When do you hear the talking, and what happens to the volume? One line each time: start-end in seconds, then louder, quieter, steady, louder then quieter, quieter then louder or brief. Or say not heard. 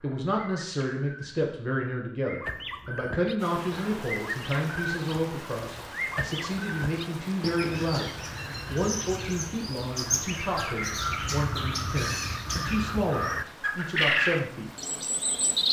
0.0-14.7 steady.